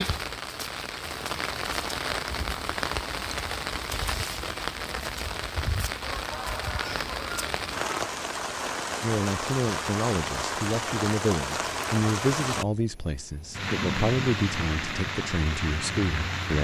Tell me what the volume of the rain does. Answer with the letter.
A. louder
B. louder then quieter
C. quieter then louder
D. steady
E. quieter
D.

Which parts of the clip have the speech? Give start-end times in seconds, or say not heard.
9.0-16.5.